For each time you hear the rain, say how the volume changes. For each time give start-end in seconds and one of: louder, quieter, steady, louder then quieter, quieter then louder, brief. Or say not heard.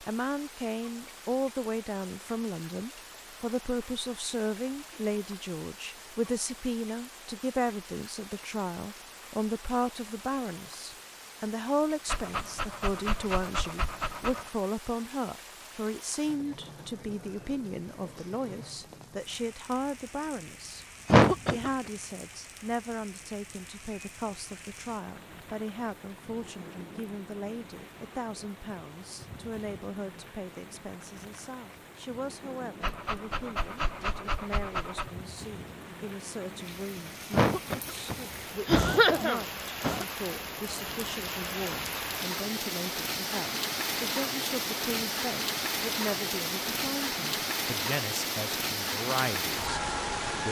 0.0-50.4 louder.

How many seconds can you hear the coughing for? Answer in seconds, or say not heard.
3 s.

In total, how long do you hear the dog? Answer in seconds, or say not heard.
5 s.